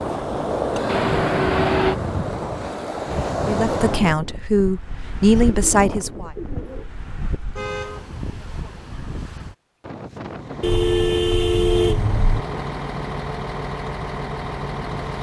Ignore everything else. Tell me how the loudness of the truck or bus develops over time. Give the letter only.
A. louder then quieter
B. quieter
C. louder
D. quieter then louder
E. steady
C.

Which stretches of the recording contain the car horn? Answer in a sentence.
You can hear the car horn from 0.8 to 1.9 s, from 7.5 to 8.1 s and from 10.6 to 12.4 s.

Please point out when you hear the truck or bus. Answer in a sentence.
You can hear the truck or bus from 10.3 to 15.1 s.